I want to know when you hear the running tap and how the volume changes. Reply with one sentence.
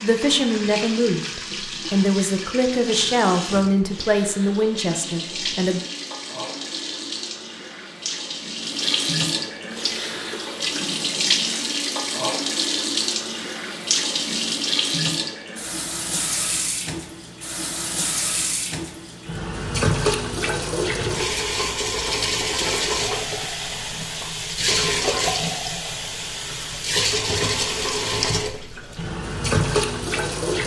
The running tap can be heard from 0.0 to 30.6 s, getting louder.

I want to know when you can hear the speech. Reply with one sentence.
The speech can be heard from 0.0 to 5.8 s.